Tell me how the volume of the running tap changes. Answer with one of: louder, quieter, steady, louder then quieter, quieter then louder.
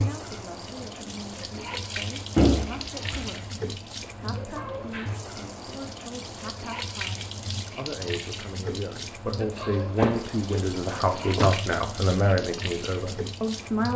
steady.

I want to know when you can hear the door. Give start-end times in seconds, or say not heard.
2.4-3.3, 10.0-11.6.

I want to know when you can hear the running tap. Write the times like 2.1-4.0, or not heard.
0.0-13.9.